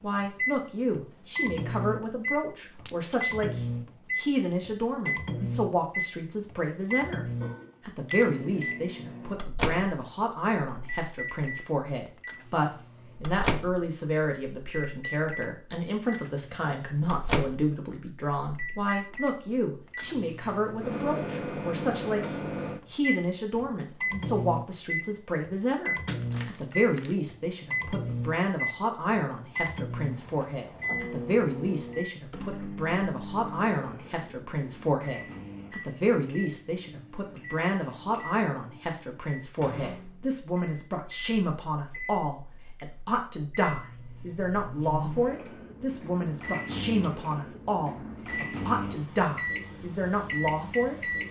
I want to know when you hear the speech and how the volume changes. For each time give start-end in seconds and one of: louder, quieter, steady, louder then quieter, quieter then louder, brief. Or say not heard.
0.0-51.1 steady.